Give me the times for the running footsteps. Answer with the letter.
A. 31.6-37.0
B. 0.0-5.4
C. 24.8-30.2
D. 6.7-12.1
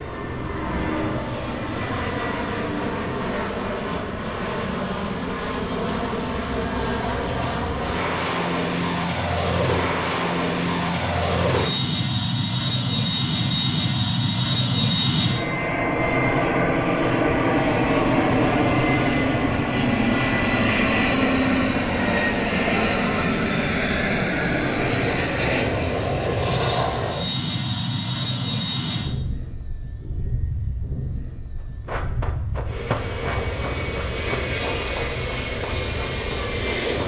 A.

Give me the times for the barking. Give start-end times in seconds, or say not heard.
not heard.